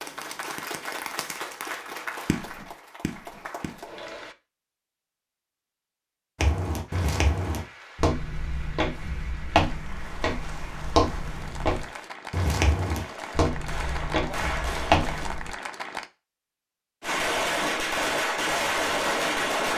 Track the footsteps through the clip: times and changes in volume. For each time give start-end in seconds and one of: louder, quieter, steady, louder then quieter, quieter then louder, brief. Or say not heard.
6.3-15.6 steady.